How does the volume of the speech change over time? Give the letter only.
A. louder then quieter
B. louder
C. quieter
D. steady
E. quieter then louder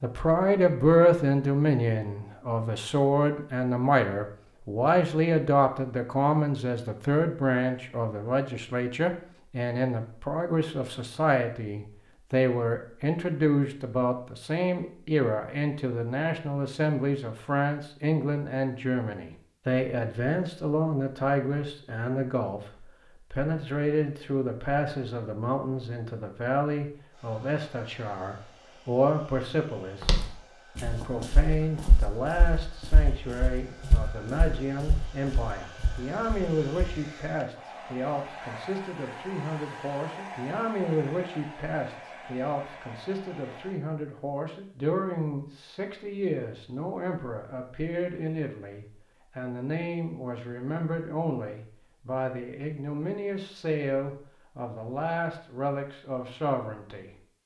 C.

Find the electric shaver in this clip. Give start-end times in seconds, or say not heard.
not heard.